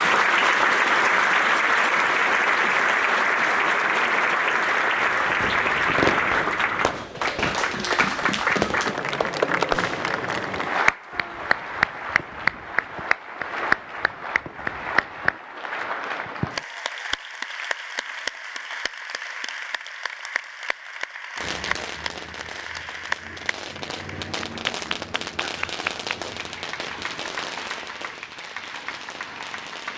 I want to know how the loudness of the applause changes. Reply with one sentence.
The volume of the applause goes down.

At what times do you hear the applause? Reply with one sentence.
The applause can be heard from 0.0 to 29.9 s.